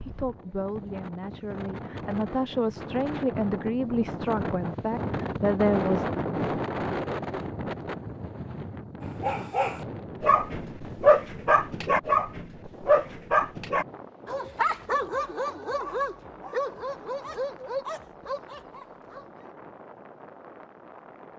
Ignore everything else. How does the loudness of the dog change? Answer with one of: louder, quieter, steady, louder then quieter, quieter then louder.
quieter.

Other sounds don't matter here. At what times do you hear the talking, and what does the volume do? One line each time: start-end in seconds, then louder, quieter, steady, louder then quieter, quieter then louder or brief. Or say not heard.
0.1-6.0 louder.